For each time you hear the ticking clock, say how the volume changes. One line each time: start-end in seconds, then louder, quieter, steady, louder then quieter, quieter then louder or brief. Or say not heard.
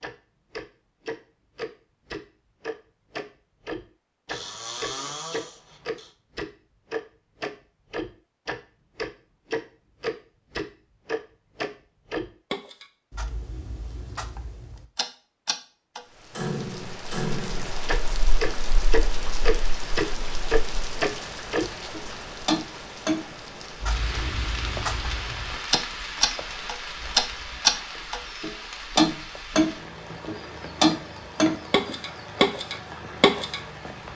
0.0-33.6 louder.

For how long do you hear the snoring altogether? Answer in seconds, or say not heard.
2 s.